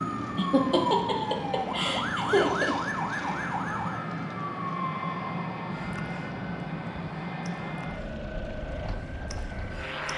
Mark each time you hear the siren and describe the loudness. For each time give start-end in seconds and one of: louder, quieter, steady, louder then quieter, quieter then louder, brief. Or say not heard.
0.0-10.1 quieter.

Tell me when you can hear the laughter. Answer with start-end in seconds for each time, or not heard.
0.3-2.8.